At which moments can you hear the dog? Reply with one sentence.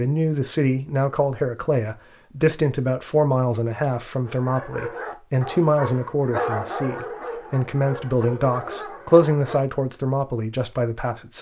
You can hear the dog from 4.2 to 9.6 s.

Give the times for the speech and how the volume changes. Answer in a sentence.
The speech can be heard from 0.0 to 11.3 s, at a steady volume.